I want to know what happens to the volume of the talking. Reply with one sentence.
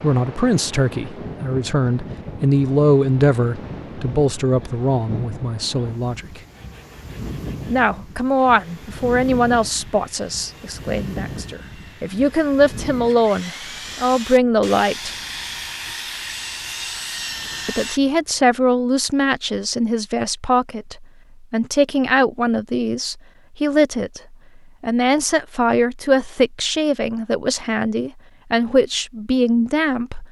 The volume of the talking stays about the same.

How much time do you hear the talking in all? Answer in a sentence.
The talking can be heard for 26 seconds in total.